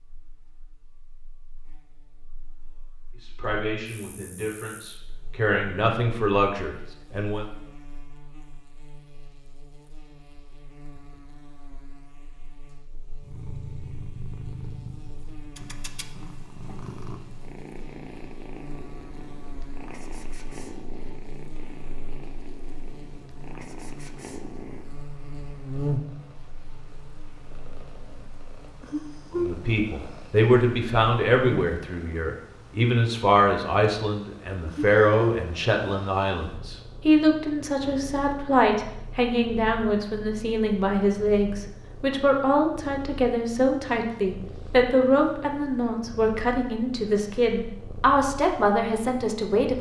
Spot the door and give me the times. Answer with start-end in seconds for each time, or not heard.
not heard.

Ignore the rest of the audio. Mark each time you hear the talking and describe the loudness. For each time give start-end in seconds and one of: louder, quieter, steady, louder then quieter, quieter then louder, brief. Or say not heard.
3.2-7.5 louder
29.4-49.7 steady.